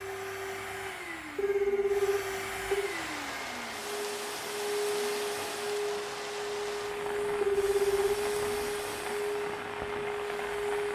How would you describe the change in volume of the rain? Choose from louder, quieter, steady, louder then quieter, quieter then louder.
steady.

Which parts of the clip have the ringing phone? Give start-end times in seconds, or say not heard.
1.4-3.0, 7.4-8.2.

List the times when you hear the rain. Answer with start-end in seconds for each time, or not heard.
2.8-10.9.